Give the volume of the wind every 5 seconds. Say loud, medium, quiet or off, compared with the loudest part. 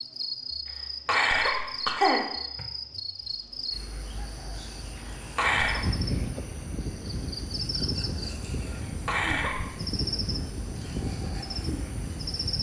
off, loud, loud.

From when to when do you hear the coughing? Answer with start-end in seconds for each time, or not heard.
1.1-2.6, 5.3-5.8, 9.1-9.7.